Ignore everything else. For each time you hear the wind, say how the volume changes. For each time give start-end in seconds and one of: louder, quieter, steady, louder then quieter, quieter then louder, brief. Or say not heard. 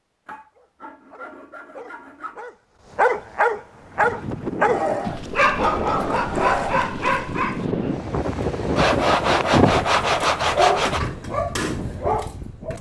3.8-12.7 louder then quieter.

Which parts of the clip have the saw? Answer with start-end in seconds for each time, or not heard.
0.2-2.5, 4.7-6.9, 8.8-11.0.